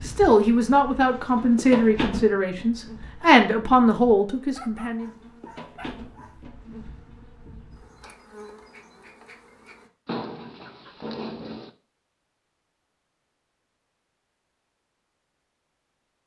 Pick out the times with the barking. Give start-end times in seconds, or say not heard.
4.5-6.4, 10.1-11.7.